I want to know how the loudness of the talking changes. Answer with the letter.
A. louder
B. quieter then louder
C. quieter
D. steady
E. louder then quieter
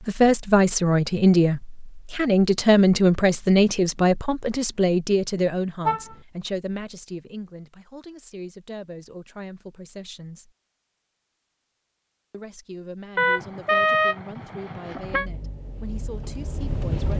C.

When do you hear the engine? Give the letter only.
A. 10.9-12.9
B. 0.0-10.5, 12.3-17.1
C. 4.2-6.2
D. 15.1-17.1
D.